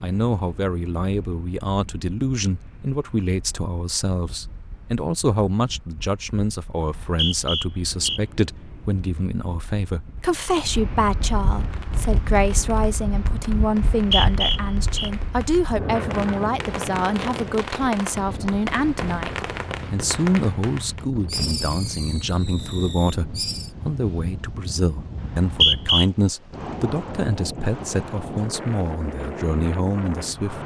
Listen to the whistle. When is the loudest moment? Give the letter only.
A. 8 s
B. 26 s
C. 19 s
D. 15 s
B.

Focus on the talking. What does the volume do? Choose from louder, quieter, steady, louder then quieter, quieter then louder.
steady.